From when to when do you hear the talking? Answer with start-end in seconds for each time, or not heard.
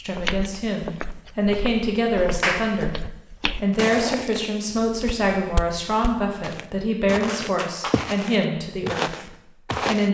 0.0-3.0, 3.5-10.0.